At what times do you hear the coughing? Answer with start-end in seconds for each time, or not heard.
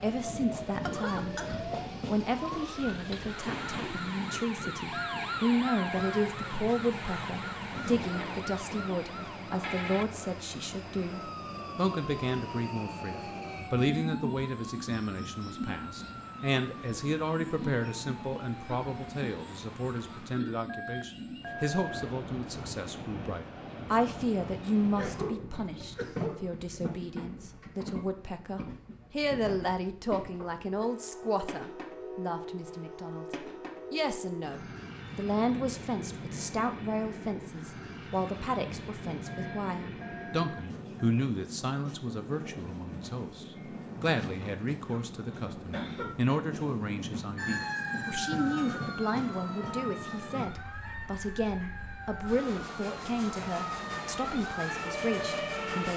0.8-1.6, 24.9-26.5, 44.9-46.4.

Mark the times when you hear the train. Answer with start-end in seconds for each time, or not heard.
0.0-55.9.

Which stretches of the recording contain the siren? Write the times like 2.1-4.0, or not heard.
0.0-20.4, 47.4-55.9.